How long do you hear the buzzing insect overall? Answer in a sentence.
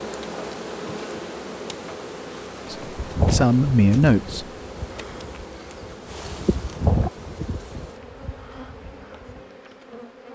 You can hear the buzzing insect for 10 seconds altogether.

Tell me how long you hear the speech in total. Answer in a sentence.
You can hear the speech for 2 seconds altogether.